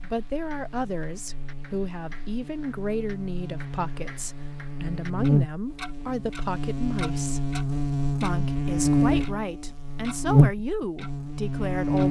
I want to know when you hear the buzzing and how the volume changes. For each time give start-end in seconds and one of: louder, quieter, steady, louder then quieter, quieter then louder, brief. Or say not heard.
0.0-12.0 louder.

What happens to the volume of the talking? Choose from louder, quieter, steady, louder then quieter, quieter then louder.
steady.